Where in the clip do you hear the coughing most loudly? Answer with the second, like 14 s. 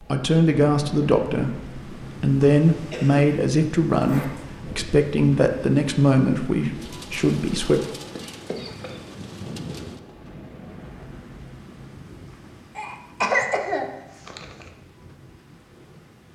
13 s.